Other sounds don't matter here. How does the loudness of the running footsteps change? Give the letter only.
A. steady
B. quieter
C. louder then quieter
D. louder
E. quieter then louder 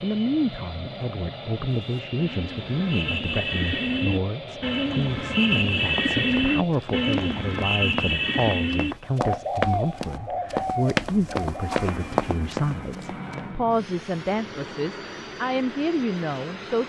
D.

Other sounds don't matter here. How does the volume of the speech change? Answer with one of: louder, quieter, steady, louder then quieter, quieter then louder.
steady.